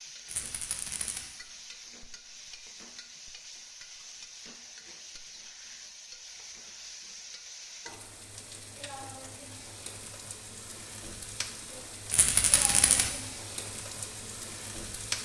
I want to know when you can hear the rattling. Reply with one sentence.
The rattling can be heard from 0.2 to 1.2 s and from 12.1 to 13.1 s.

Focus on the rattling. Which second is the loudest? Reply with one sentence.
The volume of the rattling peaks at 13 seconds.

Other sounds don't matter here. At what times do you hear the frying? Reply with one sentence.
The frying can be heard from 0.0 to 15.2 s.